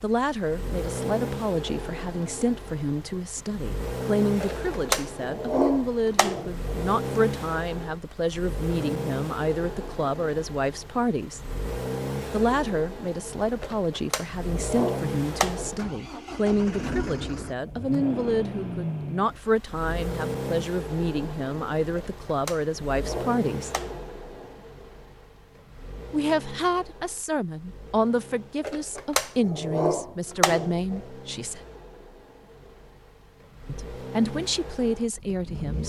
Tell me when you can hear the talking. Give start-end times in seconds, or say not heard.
0.0-11.4, 12.3-23.7, 26.1-31.6, 33.6-35.8.